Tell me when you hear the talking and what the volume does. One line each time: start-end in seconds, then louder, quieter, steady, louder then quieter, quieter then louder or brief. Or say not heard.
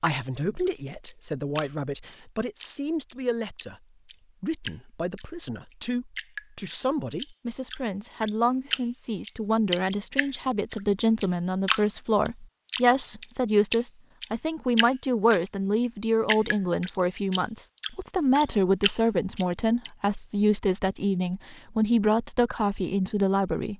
0.0-23.7 louder.